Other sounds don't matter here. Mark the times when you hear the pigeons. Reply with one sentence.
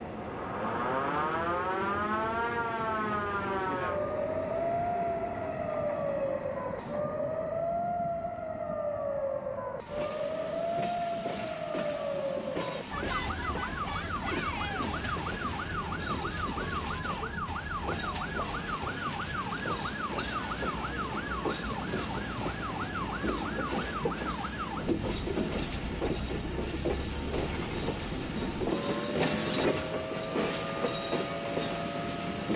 You can't hear the pigeons here.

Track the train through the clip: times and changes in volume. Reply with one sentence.
You can hear the train from 0.0 to 32.5 s, getting louder.